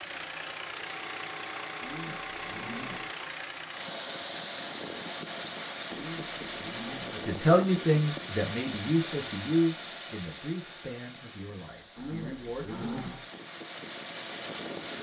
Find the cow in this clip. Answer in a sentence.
The cow can be heard from 1.8 to 3.1 s, from 5.9 to 7.2 s and from 11.9 to 13.2 s.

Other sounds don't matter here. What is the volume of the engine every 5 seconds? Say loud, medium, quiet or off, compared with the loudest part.
loud, loud, medium.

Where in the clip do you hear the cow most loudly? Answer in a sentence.
The loudest moment of the cow is at 13 seconds.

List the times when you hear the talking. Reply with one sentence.
The talking can be heard from 7.1 to 13.1 s.